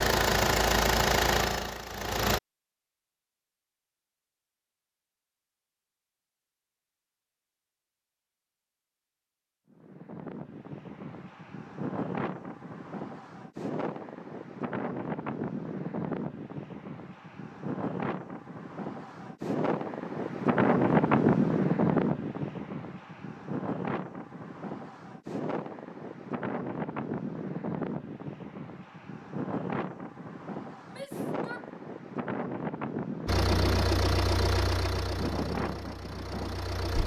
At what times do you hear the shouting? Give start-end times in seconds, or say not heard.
30.9-31.7.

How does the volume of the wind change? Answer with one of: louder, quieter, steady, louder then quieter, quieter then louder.
louder then quieter.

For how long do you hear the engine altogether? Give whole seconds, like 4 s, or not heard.
6 s.